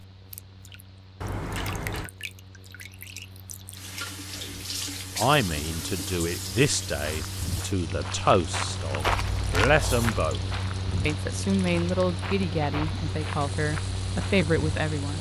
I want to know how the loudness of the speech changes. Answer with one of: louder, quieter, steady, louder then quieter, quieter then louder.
steady.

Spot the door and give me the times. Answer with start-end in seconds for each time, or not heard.
1.2-2.1, 9.7-10.2.